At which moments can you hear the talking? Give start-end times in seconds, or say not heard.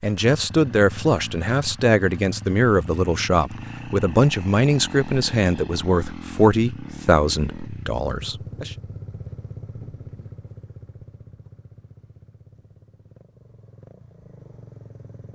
0.0-8.8.